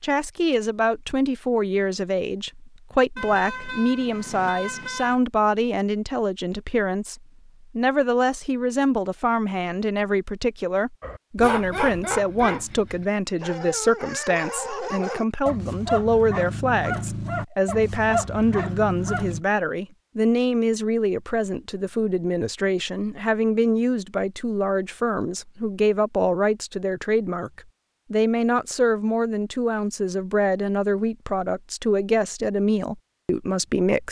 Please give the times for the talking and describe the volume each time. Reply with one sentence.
The talking can be heard from 0.0 to 34.0 s, at a steady volume.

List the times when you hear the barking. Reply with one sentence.
You can hear the barking from 11.0 to 19.4 s.